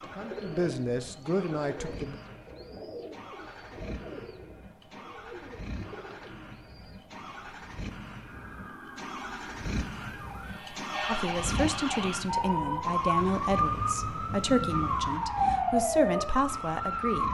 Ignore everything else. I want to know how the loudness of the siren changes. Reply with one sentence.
The loudness of the siren goes up.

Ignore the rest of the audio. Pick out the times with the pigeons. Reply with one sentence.
The pigeons can be heard from 0.0 to 7.5 s.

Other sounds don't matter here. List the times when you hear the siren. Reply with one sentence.
You can hear the siren from 8.2 to 17.2 s.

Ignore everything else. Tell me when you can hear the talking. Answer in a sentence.
The talking can be heard from 0.0 to 2.1 s and from 11.1 to 17.2 s.